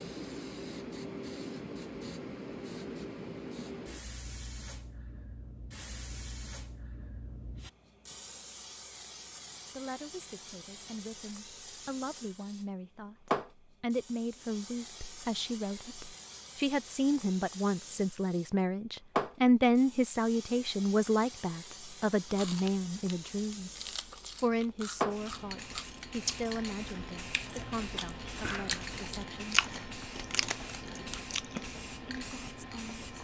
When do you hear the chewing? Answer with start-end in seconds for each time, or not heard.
22.2-31.8.